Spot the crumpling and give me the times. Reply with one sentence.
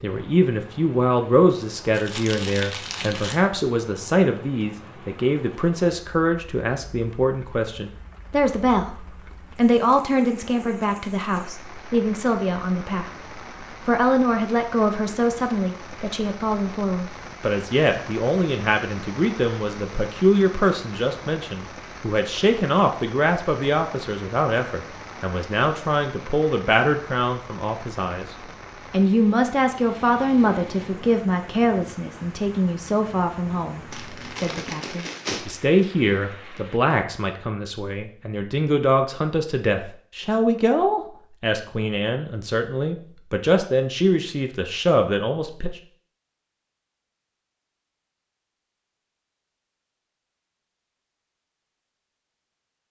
The crumpling can be heard from 1.9 to 3.5 s and from 33.9 to 35.5 s.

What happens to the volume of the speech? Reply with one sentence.
The loudness of the speech stays about the same.